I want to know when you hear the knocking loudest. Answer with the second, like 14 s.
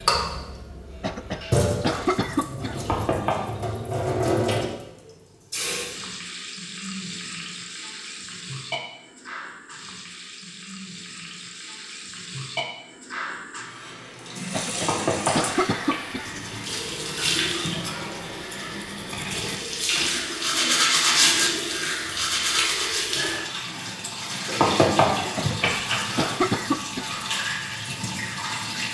25 s.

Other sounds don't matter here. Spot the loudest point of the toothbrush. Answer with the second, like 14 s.
21 s.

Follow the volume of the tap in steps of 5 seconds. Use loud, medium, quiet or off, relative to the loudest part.
loud, medium, medium, loud, loud, loud.